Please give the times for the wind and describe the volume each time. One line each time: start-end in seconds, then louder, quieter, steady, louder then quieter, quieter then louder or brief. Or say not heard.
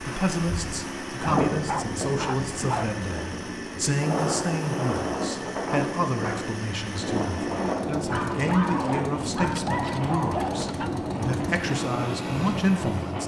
0.0-13.2 steady.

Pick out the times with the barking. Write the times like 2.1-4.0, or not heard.
1.2-3.0, 8.1-10.9.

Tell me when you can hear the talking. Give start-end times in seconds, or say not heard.
0.0-13.2.